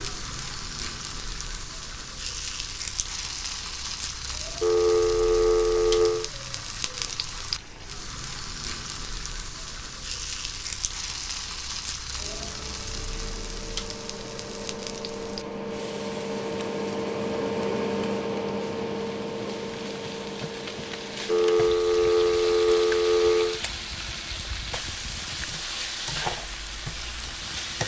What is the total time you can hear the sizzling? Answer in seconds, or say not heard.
28 s.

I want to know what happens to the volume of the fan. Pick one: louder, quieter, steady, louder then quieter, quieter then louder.
louder then quieter.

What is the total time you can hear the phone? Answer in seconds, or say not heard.
4 s.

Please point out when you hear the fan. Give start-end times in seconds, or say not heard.
12.2-27.8.